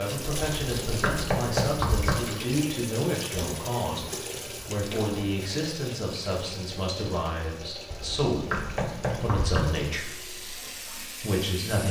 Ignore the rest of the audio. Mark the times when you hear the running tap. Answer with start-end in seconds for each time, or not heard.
0.0-11.8.